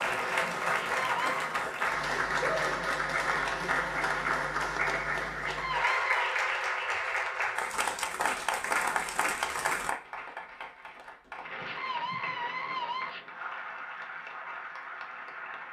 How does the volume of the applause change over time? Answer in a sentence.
The volume of the applause goes down.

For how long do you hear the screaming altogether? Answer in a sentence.
You can hear the screaming for 3 seconds altogether.